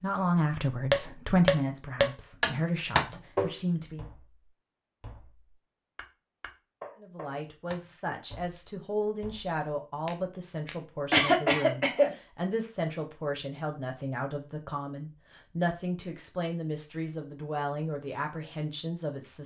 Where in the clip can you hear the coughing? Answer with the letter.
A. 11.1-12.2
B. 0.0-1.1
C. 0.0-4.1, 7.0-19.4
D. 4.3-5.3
A.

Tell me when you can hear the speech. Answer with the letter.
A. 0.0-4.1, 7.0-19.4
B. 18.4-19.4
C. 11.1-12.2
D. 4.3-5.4
A.